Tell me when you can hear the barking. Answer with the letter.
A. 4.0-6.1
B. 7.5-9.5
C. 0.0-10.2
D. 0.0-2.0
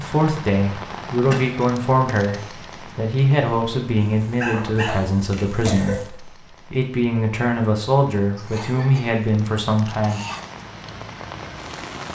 A.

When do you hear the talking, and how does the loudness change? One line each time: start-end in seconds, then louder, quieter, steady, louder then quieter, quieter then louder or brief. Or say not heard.
0.0-10.2 steady.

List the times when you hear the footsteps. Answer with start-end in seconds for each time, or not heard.
not heard.